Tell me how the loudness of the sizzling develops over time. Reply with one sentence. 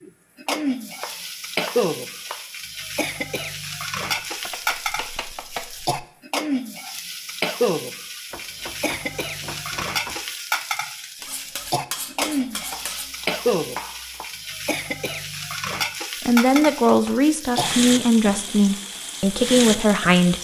The loudness of the sizzling stays about the same.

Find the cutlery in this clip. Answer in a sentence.
The cutlery can be heard from 11.2 to 13.1 s.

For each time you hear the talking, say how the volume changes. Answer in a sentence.
You can hear the talking from 16.2 to 20.3 s, at a steady volume.